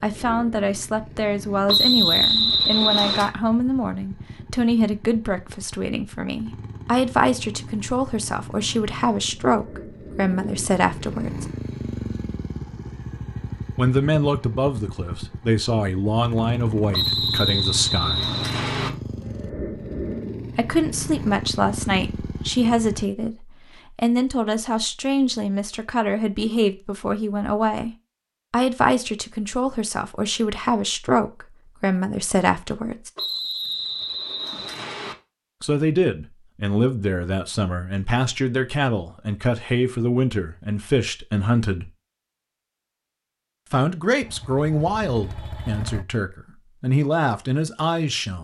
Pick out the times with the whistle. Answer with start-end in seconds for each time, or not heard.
1.6-3.3, 16.9-18.9, 33.1-35.1.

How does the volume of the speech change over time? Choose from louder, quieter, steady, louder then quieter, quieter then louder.
steady.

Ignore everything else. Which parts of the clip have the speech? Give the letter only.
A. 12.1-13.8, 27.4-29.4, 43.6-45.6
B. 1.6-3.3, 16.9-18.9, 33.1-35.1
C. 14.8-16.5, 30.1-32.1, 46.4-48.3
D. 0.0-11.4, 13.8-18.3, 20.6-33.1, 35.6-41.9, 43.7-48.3
D.